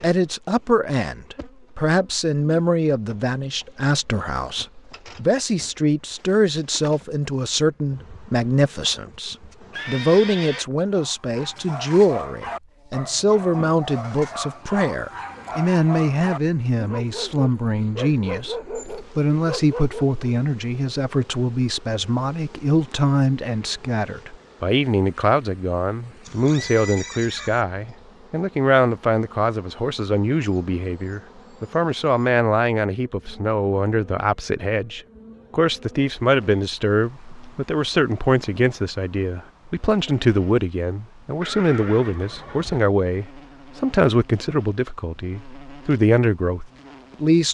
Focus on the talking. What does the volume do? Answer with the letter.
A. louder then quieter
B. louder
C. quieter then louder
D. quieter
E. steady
E.